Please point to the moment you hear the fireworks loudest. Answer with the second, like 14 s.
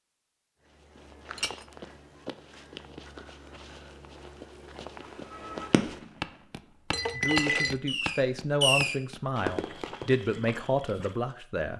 9 s.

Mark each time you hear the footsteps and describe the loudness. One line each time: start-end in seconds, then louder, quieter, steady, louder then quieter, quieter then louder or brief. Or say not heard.
0.7-11.2 louder then quieter.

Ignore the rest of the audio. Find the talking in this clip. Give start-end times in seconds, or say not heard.
7.2-11.7.